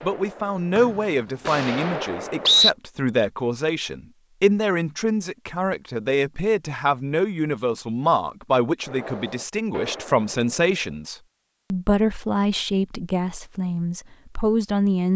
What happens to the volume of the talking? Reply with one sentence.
The loudness of the talking stays about the same.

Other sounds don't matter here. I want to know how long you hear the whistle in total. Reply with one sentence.
You can hear the whistle for 2 seconds altogether.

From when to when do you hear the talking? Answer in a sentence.
You can hear the talking from 0.0 to 15.1 s.